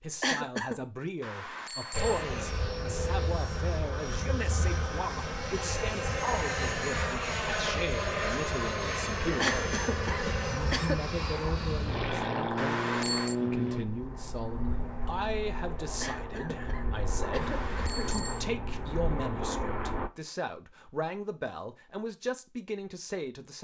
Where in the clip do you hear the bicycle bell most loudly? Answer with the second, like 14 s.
13 s.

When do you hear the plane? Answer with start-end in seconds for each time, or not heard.
1.9-20.1.